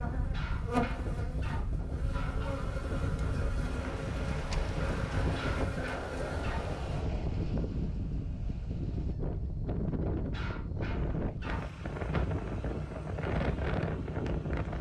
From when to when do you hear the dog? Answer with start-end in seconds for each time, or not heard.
0.3-2.6, 5.3-6.7, 10.3-12.3.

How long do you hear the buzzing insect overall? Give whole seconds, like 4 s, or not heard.
7 s.